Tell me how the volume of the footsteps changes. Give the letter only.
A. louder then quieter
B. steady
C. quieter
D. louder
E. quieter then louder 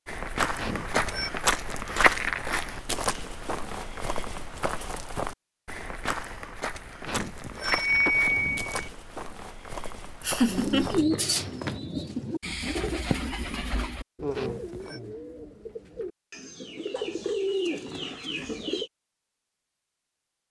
C.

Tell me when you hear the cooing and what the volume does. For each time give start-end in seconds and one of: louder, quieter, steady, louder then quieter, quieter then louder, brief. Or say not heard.
10.4-18.9 quieter then louder.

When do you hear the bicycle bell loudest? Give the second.
8 s.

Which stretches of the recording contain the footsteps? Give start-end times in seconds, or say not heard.
0.1-11.8.